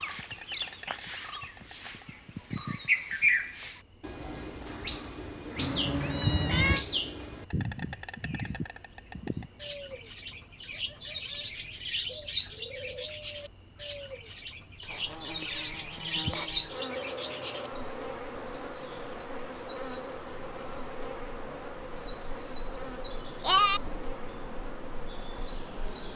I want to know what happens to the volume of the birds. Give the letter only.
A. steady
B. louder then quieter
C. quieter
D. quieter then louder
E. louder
C.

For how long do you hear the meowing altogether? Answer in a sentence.
You can hear the meowing for 2 seconds altogether.